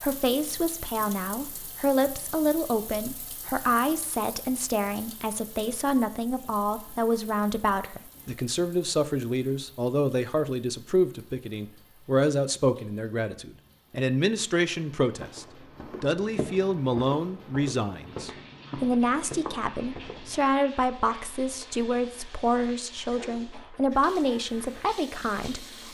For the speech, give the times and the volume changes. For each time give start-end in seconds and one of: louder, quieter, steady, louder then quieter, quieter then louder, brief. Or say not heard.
0.0-25.8 steady.